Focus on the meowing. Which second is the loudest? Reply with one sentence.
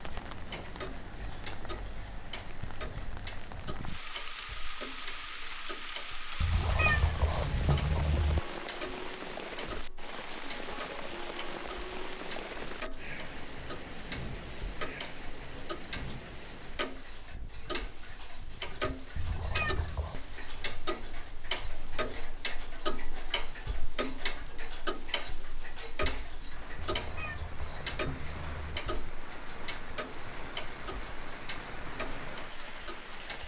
The volume of the meowing peaks at 7 seconds.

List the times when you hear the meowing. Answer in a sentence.
You can hear the meowing from 6.4 to 8.4 s, from 19.1 to 20.2 s and from 26.8 to 28.8 s.